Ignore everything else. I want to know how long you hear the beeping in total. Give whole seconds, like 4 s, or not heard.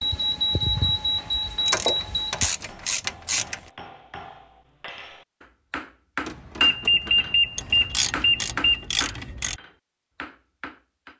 5 s.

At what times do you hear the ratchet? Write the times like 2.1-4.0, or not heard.
1.6-3.7, 7.5-9.6.